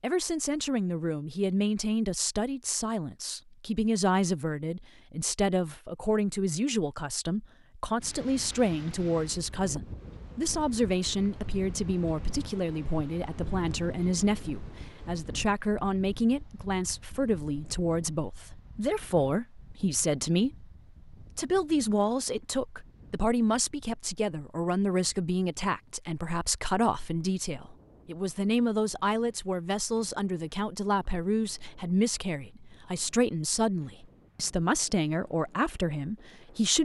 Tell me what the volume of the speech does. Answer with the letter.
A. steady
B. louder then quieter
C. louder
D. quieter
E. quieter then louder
A.